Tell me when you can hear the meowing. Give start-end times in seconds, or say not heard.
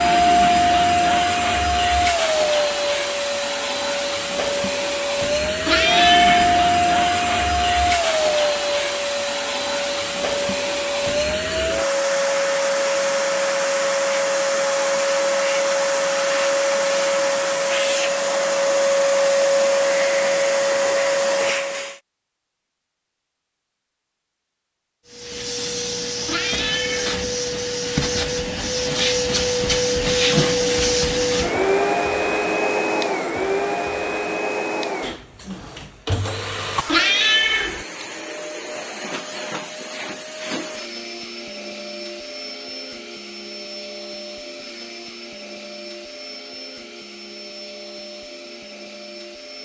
5.7-6.6, 26.2-27.2, 36.9-37.9.